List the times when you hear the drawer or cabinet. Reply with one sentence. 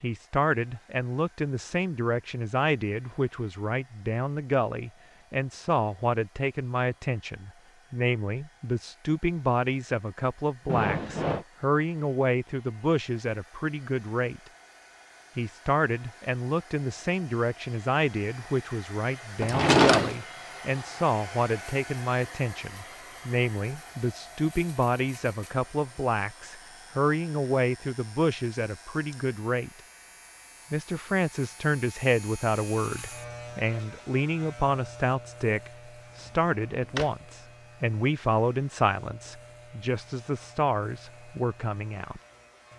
You can hear the drawer or cabinet from 10.7 to 11.4 s, from 19.4 to 20.1 s and from 36.2 to 37.1 s.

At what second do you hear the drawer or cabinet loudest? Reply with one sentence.
The volume of the drawer or cabinet peaks at 20 seconds.